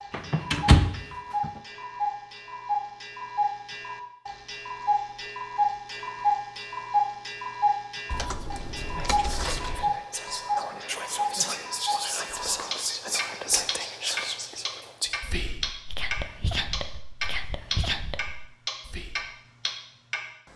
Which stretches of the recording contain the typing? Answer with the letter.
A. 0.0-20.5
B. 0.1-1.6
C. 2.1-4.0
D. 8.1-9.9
D.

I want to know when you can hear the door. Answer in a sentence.
The door can be heard from 0.1 to 1.6 s.